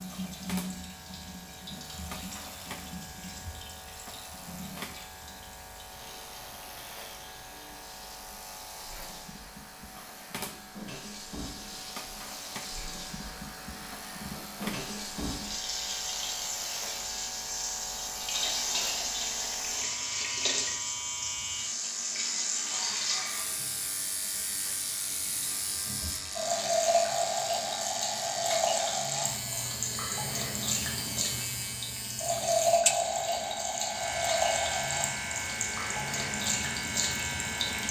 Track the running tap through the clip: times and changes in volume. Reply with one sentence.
The running tap can be heard from 0.0 to 37.8 s, getting louder.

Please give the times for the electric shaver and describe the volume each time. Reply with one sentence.
The electric shaver can be heard from 0.0 to 37.8 s, getting louder.